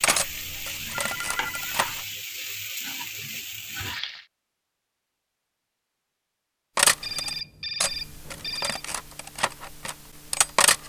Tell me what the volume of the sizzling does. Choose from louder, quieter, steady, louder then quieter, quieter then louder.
steady.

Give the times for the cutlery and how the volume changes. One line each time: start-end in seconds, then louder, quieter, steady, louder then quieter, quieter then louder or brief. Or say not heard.
0.0-2.0 brief
6.8-10.8 steady.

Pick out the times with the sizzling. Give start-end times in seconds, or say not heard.
0.0-4.2.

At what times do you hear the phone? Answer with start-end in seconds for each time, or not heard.
0.9-1.8, 7.0-8.8.